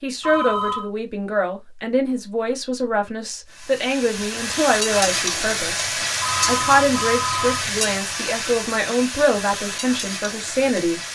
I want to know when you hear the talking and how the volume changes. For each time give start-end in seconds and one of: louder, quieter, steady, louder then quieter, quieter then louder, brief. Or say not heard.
0.0-11.0 steady.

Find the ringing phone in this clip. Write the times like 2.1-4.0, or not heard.
0.2-0.9, 6.2-7.7.